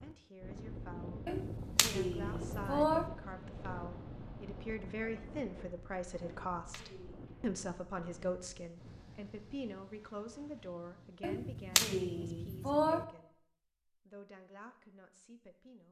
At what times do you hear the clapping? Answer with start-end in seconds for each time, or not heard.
1.2-3.1, 6.2-7.5, 11.2-13.1.